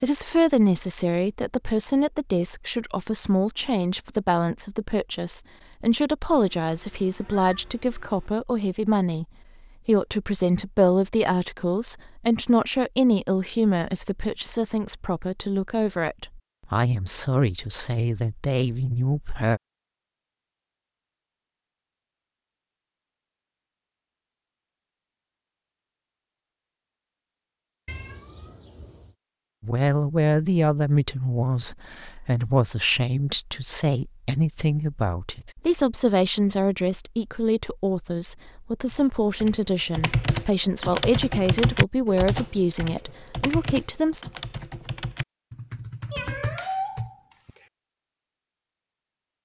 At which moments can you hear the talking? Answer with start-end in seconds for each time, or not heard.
0.0-9.2, 9.8-19.6, 29.6-44.2.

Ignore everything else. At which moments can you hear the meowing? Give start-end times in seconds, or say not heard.
6.3-8.3, 27.9-29.1, 46.1-47.1.